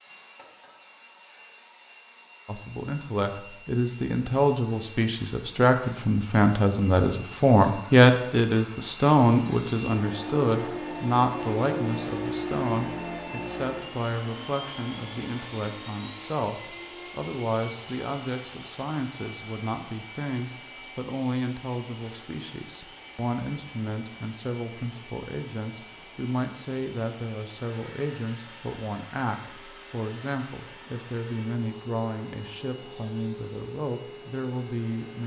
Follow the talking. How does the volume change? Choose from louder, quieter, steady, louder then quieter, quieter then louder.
quieter.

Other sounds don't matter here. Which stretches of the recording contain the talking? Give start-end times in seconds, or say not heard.
2.5-35.2.